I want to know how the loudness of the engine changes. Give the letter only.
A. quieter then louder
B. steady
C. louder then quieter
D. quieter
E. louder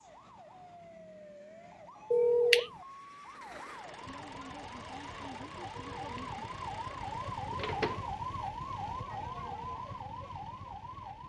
B.